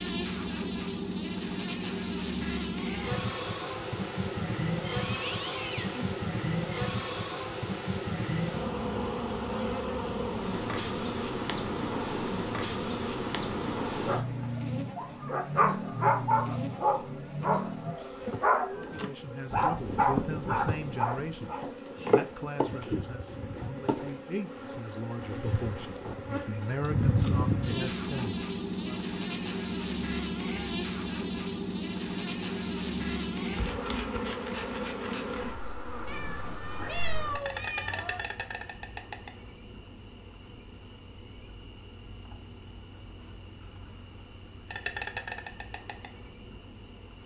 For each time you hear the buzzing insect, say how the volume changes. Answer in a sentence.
The buzzing insect can be heard from 0.0 to 47.2 s, at a steady volume.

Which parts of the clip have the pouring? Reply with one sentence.
You can't hear the pouring here.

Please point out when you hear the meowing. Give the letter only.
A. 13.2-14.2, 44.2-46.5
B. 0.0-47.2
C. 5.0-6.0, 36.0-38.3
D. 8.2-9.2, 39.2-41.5
C.